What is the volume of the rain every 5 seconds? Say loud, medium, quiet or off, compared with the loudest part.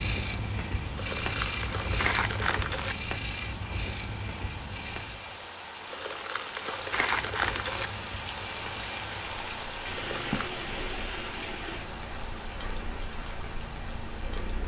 medium, loud, loud.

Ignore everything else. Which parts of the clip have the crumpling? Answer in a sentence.
You can hear the crumpling from 0.9 to 3.0 s, from 5.9 to 7.9 s and from 9.9 to 10.6 s.